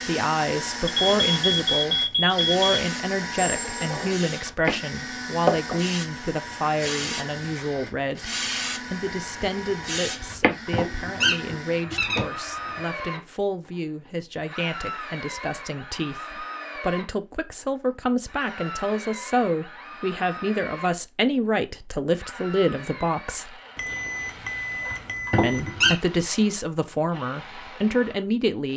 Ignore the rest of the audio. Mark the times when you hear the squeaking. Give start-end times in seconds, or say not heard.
3.4-4.1, 10.3-12.2, 24.9-25.9.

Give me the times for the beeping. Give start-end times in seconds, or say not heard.
0.8-2.9, 23.8-25.8.